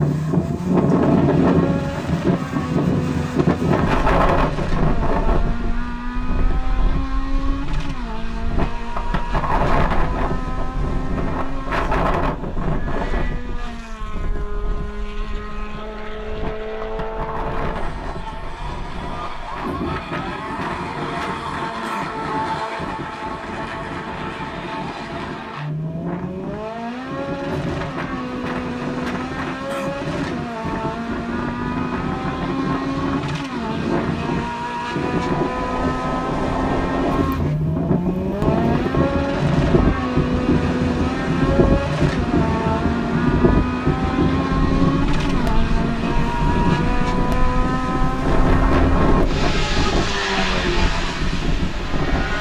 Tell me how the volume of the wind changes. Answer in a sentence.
The loudness of the wind goes down, then up.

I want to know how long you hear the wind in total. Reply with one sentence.
You can hear the wind for 52 seconds altogether.